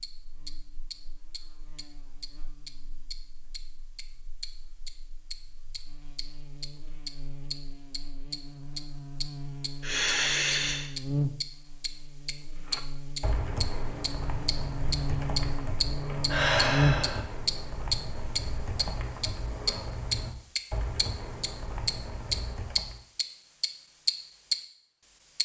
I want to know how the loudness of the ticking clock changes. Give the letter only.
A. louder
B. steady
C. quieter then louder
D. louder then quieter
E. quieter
A.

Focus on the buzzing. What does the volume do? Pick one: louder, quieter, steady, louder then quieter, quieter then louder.
louder.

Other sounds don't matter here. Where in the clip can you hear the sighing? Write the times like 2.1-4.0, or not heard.
9.8-10.8, 16.2-17.2.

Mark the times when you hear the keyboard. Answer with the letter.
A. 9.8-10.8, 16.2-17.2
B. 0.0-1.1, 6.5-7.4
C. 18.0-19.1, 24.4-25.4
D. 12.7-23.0
D.